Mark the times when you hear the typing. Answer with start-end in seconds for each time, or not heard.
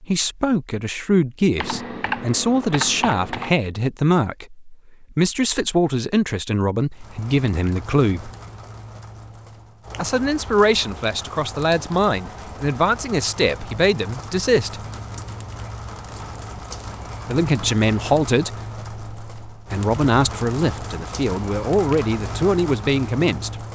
1.6-3.5.